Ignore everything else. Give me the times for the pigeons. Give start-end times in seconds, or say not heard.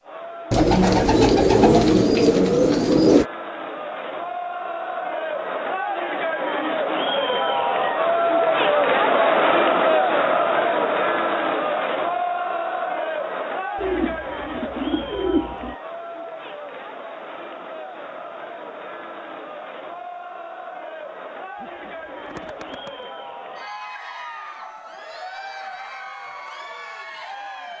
0.5-3.2, 13.8-15.8, 21.6-22.9.